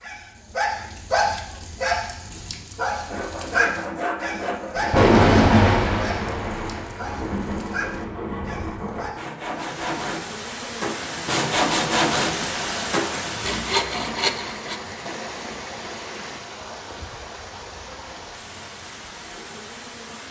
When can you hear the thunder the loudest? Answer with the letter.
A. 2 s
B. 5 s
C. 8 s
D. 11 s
B.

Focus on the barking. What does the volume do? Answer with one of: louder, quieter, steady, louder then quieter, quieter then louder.
quieter.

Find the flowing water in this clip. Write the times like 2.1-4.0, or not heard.
9.5-20.2.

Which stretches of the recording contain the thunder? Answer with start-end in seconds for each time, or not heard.
4.8-9.1.